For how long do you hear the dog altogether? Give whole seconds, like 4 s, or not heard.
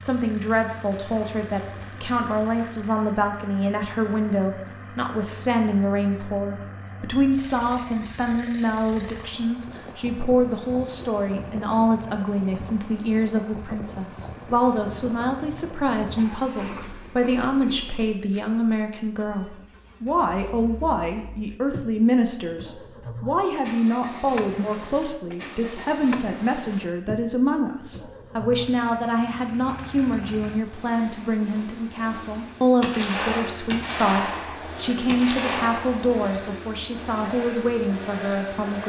not heard.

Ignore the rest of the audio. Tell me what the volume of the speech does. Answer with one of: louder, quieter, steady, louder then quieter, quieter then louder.
steady.